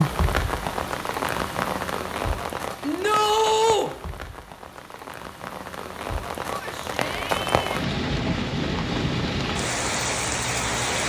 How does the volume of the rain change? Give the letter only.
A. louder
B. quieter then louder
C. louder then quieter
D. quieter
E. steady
B.